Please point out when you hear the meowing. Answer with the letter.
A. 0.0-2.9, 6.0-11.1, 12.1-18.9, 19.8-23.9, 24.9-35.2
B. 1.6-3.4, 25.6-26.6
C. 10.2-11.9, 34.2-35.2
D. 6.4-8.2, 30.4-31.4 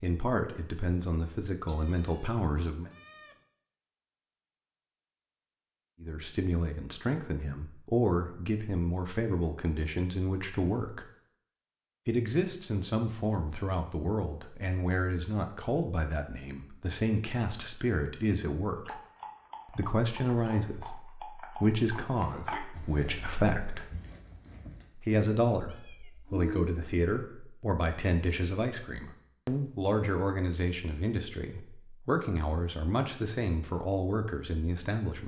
B.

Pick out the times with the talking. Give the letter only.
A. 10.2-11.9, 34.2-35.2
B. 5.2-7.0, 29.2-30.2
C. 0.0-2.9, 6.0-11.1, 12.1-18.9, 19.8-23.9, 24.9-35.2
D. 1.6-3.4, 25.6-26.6
C.